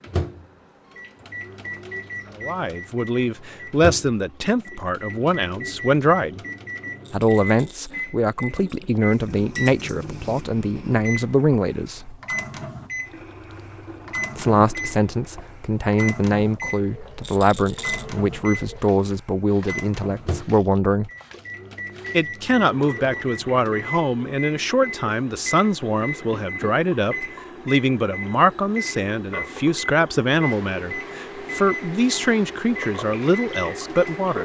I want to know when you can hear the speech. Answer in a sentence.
The speech can be heard from 2.4 to 6.4 s, from 7.1 to 12.2 s, from 14.3 to 21.1 s and from 22.1 to 34.3 s.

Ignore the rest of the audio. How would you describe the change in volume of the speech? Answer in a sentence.
The loudness of the speech stays about the same.